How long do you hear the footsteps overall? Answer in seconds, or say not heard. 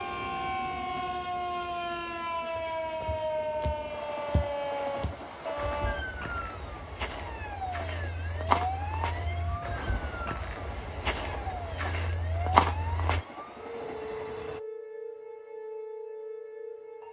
11 s.